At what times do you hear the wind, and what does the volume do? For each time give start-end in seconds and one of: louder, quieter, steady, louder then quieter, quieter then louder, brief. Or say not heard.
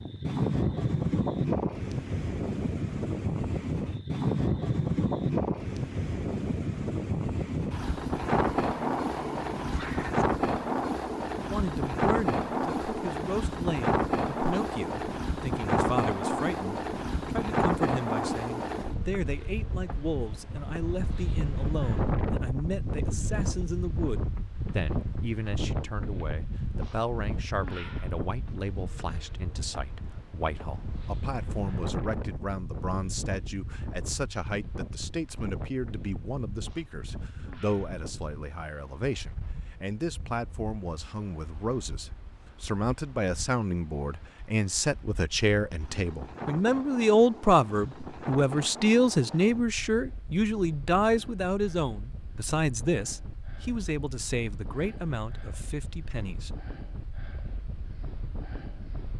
0.0-59.1 quieter.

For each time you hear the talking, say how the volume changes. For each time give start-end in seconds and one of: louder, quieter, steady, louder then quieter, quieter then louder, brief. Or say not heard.
11.5-56.5 louder.